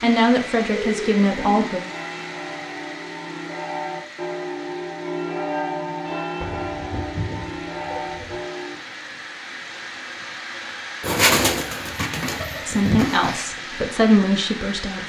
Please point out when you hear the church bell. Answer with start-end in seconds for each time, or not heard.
1.4-8.8.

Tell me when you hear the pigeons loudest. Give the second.
11 s.